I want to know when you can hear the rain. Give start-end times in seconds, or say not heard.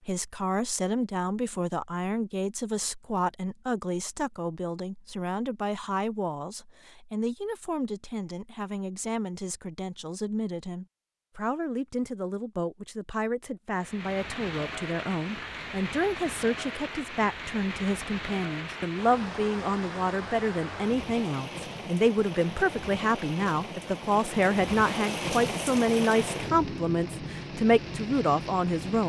13.8-29.0.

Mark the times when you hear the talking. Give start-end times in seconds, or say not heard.
0.1-29.0.